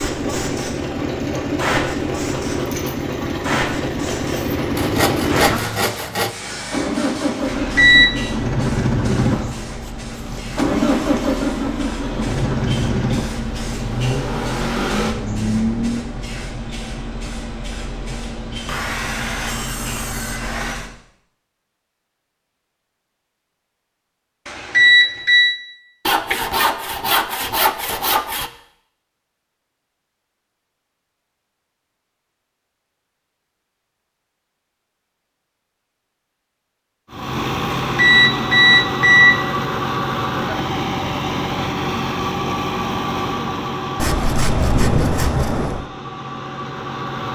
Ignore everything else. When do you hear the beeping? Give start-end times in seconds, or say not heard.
7.5-8.1, 24.4-25.6, 37.9-39.6.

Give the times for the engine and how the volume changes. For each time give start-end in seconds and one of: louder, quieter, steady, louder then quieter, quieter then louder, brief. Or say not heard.
0.0-16.1 steady
37.1-47.3 quieter.